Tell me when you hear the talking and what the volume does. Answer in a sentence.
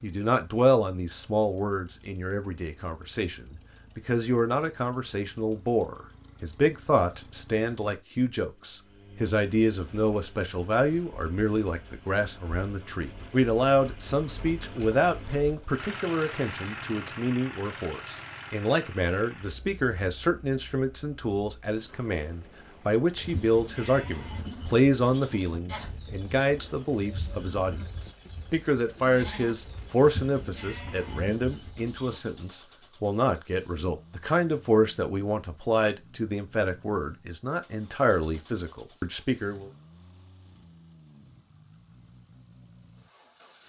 The talking can be heard from 0.0 to 39.7 s, at a steady volume.